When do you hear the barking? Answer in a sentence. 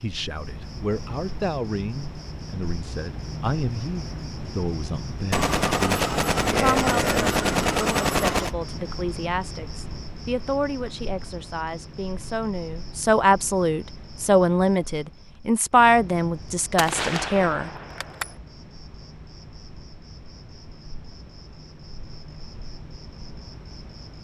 You can't hear the barking here.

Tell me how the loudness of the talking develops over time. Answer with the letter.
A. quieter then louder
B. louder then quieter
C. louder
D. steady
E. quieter
C.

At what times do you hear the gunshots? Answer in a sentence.
The gunshots can be heard from 5.3 to 8.6 s and from 16.8 to 18.4 s.